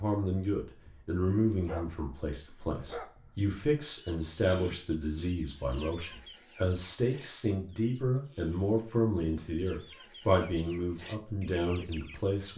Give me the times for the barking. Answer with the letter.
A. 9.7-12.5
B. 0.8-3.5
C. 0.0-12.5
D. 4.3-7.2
B.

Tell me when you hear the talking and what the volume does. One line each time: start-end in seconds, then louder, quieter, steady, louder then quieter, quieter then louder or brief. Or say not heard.
0.0-12.5 steady.